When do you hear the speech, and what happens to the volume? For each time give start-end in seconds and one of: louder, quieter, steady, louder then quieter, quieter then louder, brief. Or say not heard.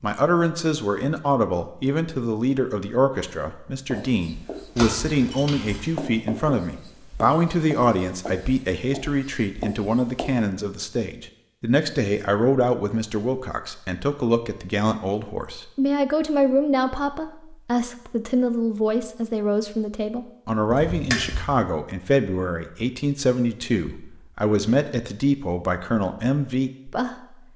0.0-27.4 steady.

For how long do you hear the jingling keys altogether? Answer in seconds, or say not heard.
2 s.